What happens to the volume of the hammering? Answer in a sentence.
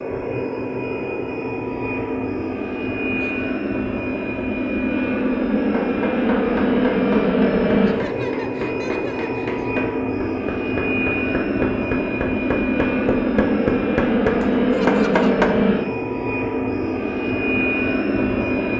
The loudness of the hammering goes up.